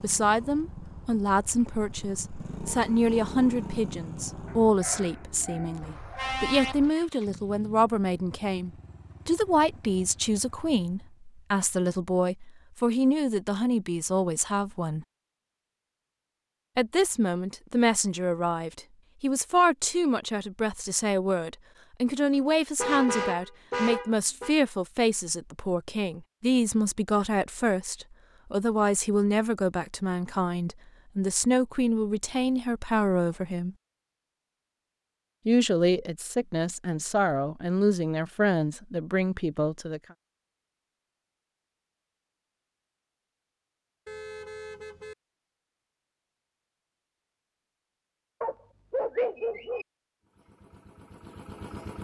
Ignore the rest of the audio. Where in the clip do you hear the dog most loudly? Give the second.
49 s.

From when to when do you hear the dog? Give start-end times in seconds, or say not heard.
4.5-6.3, 48.4-49.9.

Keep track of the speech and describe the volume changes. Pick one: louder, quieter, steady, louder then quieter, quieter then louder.
steady.